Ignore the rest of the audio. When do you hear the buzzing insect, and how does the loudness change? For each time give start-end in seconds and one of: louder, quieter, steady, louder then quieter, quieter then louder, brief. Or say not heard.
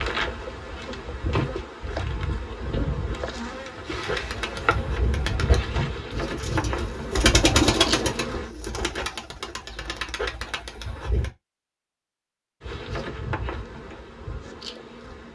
0.0-8.5 steady
12.6-15.2 brief.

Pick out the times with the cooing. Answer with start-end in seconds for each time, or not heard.
4.0-11.3.